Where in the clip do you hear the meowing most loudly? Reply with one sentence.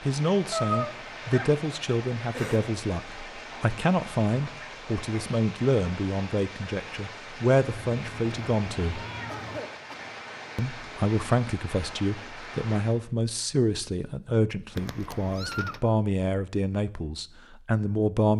The loudest moment of the meowing is at 1 second.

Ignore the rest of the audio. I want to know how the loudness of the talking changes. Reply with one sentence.
The volume of the talking stays about the same.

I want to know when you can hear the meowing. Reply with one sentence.
The meowing can be heard from 0.5 to 1.5 s, from 7.6 to 9.6 s and from 14.8 to 15.8 s.